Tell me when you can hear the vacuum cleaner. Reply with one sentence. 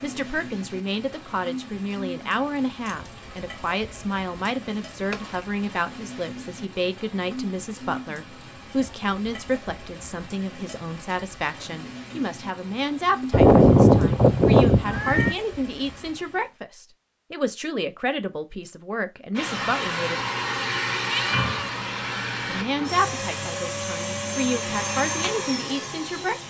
The vacuum cleaner can be heard from 19.4 to 26.4 s.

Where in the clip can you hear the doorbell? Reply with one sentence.
The doorbell can't be heard in this clip.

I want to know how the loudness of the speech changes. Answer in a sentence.
The volume of the speech stays about the same.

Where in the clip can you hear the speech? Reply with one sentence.
You can hear the speech from 0.0 to 20.2 s and from 22.4 to 26.4 s.